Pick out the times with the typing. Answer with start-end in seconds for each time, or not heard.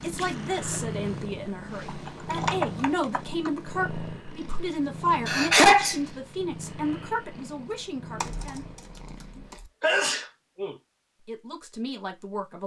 1.9-3.5, 8.2-9.7.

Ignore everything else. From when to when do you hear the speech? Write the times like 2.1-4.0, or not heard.
0.0-8.7, 11.2-12.6.